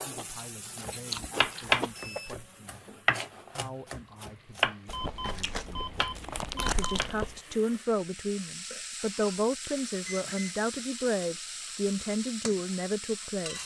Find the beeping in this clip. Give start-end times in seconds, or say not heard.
1.4-2.3, 4.9-7.0, 10.1-10.7.